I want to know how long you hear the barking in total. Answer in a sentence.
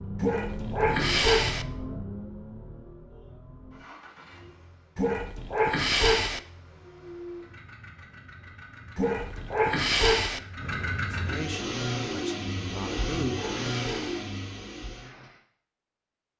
You can hear the barking for 6 seconds altogether.